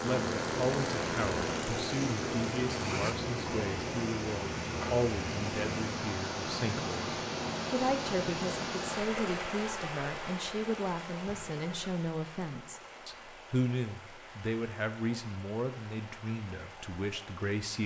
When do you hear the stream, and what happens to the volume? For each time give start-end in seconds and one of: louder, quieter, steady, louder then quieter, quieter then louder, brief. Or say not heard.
0.0-17.8 quieter.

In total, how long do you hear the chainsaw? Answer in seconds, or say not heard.
3 s.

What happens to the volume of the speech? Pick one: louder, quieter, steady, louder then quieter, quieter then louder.
steady.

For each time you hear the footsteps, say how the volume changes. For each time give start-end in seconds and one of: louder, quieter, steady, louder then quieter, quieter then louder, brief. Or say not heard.
not heard.